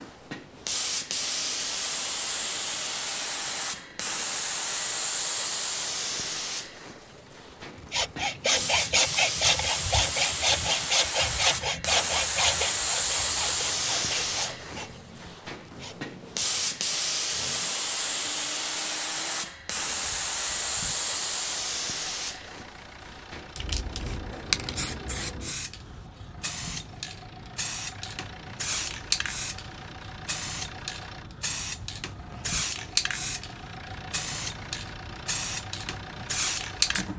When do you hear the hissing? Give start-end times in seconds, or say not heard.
0.0-37.1.